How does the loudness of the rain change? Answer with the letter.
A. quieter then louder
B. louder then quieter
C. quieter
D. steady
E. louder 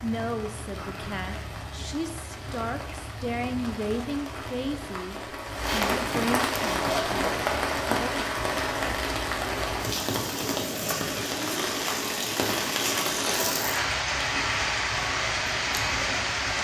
E.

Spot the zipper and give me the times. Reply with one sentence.
The zipper can be heard from 5.6 to 7.2 s.